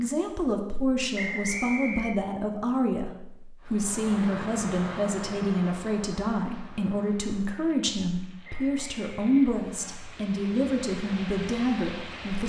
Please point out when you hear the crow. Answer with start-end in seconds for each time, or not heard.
not heard.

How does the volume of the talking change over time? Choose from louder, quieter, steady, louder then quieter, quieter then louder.
steady.